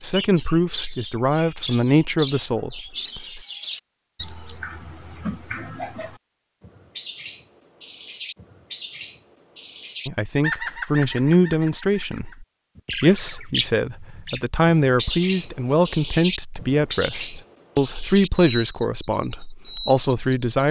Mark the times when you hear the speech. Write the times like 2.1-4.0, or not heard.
0.0-3.5, 10.1-20.6.